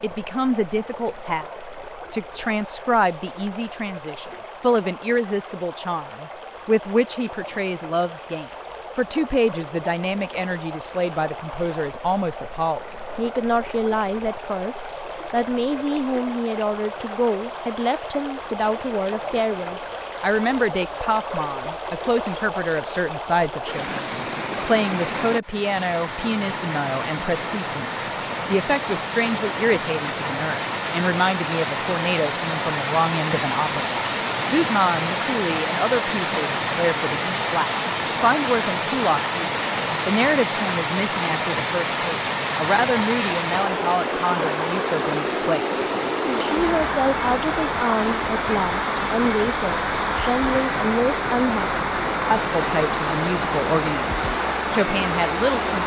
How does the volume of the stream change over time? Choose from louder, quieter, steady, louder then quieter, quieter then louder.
louder.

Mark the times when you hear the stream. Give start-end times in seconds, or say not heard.
0.0-55.8.